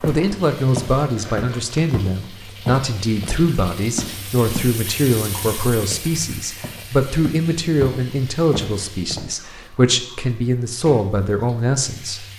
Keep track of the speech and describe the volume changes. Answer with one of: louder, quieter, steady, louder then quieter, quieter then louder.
steady.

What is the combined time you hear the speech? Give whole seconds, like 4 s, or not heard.
12 s.